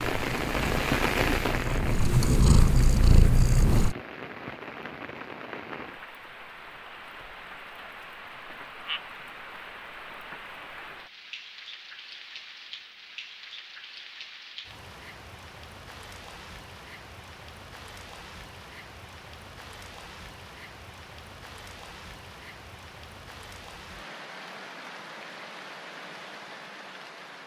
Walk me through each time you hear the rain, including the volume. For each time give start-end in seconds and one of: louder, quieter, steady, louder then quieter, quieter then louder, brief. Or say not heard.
0.0-27.4 quieter.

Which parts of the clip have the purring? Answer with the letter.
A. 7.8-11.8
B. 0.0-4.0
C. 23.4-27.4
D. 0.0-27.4
B.